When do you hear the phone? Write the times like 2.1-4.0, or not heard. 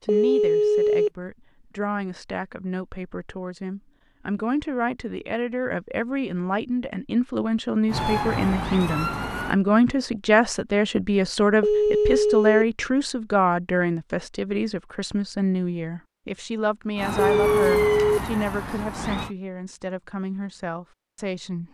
0.1-1.1, 11.6-12.7, 17.4-18.2.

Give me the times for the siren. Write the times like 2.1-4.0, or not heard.
7.8-9.6, 16.9-19.4.